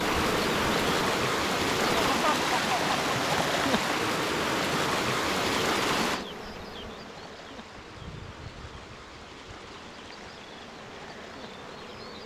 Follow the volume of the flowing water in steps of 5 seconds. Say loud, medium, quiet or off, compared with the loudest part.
loud, medium, quiet.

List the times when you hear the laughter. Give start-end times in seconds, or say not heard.
1.9-3.0.